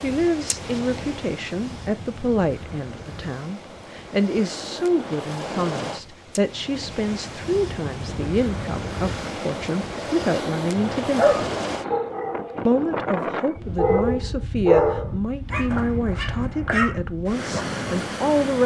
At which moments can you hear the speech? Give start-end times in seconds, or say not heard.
0.0-11.3, 12.7-18.6.